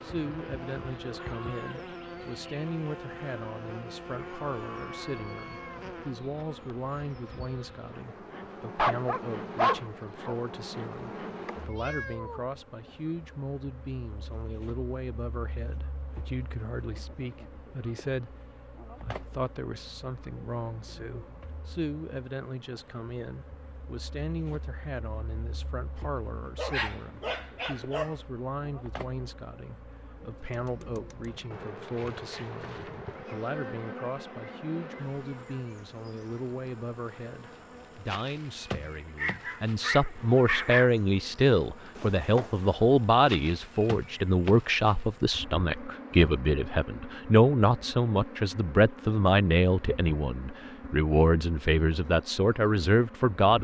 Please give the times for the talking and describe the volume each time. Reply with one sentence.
You can hear the talking from 0.0 to 53.6 s, getting louder.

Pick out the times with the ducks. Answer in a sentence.
The ducks can't be heard in this clip.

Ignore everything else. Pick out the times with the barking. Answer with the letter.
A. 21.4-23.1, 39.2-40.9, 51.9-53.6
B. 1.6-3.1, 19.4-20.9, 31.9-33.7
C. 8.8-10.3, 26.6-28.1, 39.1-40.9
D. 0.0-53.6
C.